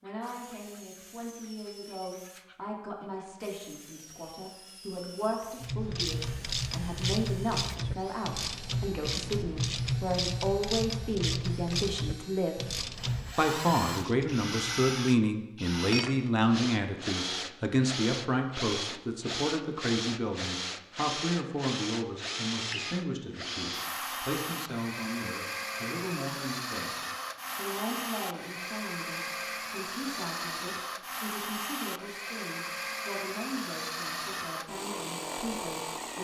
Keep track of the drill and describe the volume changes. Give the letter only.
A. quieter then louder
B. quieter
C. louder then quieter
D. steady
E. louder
E.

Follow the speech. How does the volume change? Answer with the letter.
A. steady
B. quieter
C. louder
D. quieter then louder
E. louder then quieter
E.